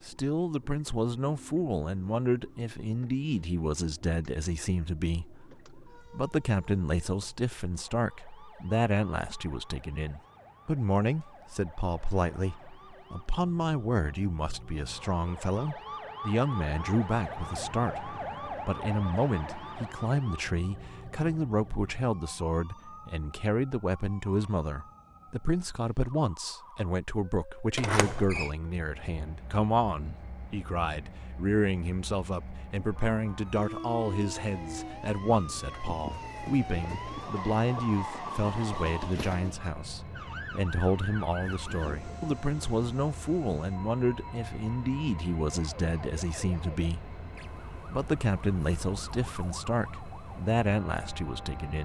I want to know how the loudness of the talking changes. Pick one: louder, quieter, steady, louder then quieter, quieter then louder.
steady.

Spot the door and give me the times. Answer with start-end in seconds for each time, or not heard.
27.8-28.5.